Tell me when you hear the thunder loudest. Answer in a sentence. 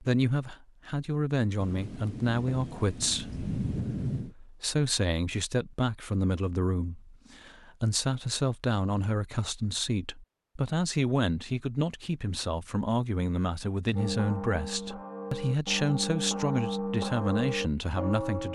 The volume of the thunder peaks at 4 seconds.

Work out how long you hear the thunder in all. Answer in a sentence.
You can hear the thunder for 3 seconds altogether.